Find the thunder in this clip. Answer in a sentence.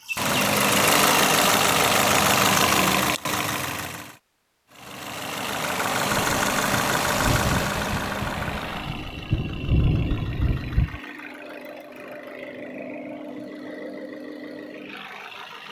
You can hear the thunder from 6.1 to 11.0 s.